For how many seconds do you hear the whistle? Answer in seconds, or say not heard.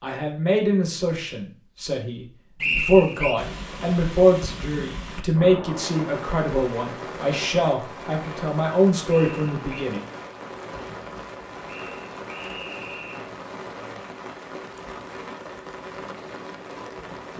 3 s.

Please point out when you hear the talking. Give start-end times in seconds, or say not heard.
0.0-10.1.